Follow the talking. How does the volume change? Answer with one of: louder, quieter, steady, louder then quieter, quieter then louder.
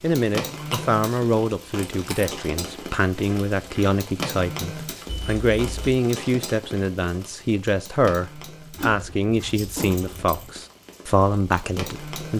steady.